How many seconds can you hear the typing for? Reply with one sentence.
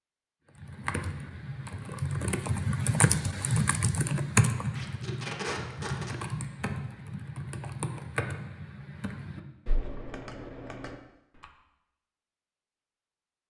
You can hear the typing for 11 seconds altogether.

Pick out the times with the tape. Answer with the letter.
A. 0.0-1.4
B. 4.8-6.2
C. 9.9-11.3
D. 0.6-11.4
B.